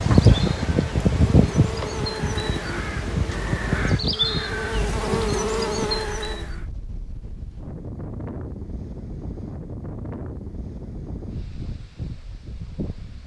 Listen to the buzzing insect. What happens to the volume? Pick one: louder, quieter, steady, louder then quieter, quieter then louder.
louder.